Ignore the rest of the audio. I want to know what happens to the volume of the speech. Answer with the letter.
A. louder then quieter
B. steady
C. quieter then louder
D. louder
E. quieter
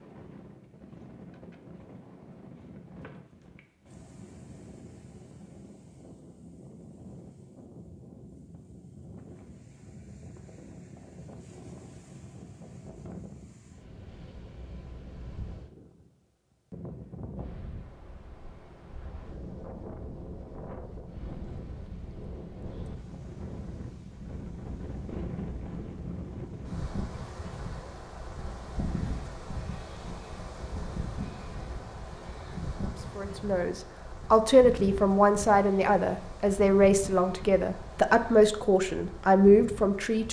B.